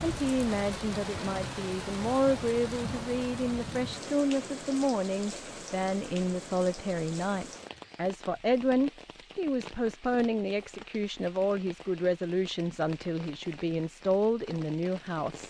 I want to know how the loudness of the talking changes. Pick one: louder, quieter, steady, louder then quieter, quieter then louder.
steady.